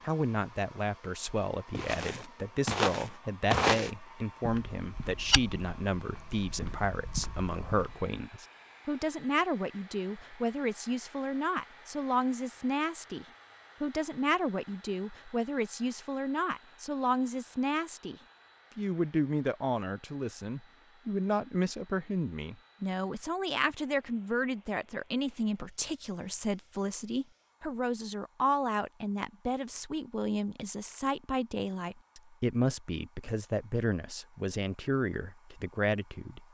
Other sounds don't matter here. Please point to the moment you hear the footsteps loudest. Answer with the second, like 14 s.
4 s.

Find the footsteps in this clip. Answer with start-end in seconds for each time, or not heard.
1.7-8.1.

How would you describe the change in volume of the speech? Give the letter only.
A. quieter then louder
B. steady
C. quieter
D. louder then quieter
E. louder
B.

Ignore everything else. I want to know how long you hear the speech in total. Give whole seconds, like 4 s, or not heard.
36 s.